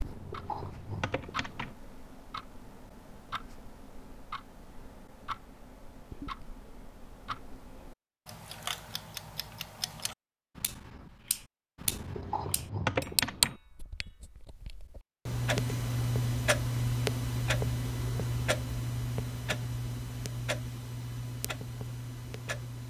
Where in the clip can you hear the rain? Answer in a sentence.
You can't hear the rain here.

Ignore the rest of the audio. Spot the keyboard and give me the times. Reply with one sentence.
The keyboard can be heard from 0.0 to 1.8 s and from 11.8 to 13.6 s.